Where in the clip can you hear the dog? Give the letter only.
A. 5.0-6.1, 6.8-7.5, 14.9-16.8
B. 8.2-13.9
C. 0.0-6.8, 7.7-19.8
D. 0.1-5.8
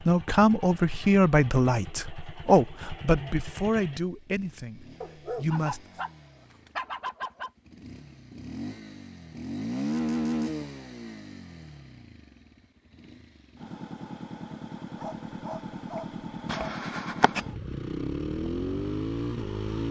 A.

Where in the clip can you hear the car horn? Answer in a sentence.
The car horn can't be heard in this clip.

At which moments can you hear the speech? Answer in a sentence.
You can hear the speech from 0.1 to 5.8 s.